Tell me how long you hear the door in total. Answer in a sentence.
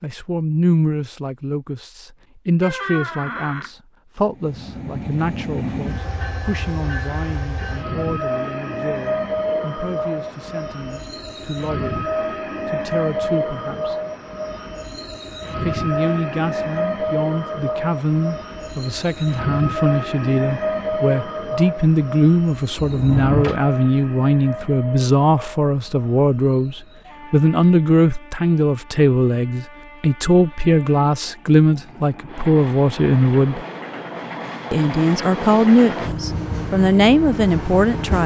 You can hear the door for 2 seconds altogether.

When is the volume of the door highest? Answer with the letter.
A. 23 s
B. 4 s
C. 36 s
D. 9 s
A.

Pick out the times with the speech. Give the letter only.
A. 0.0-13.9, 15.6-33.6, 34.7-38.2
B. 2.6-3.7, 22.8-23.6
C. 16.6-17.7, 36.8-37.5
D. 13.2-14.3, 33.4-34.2
A.